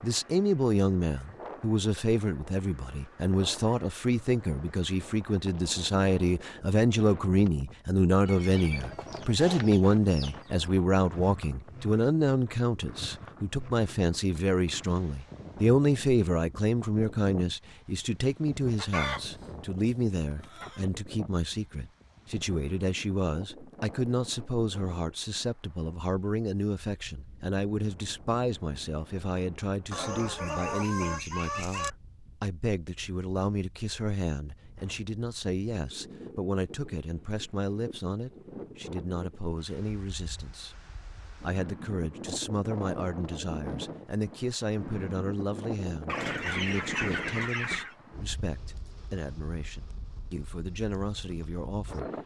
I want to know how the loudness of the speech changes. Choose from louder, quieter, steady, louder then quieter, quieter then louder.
quieter.